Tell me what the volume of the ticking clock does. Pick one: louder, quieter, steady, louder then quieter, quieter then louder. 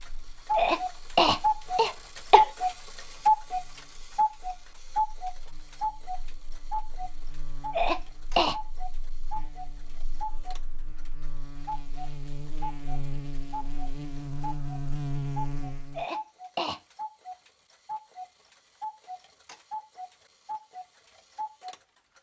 quieter.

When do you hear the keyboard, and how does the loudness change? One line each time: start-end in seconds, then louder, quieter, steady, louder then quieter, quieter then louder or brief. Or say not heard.
not heard.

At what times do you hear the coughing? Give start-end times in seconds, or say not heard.
0.6-2.5, 7.7-8.6, 15.9-16.8.